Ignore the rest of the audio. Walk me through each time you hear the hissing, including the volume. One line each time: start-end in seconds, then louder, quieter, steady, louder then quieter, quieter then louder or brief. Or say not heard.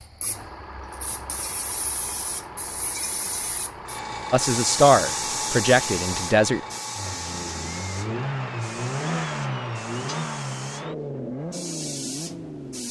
0.0-12.8 louder then quieter.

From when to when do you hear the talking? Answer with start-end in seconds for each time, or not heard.
4.3-6.6.